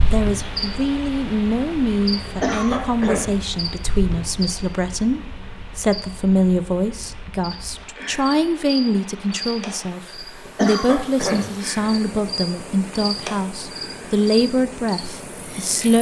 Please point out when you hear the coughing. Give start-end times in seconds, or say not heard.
2.2-3.3, 10.4-11.5.